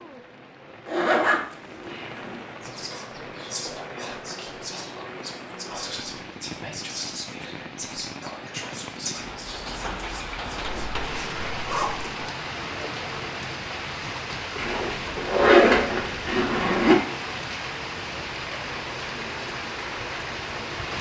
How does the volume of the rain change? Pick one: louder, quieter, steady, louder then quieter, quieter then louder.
louder.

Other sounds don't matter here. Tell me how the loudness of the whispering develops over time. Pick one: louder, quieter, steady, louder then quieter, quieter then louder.
steady.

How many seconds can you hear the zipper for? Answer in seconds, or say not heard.
6 s.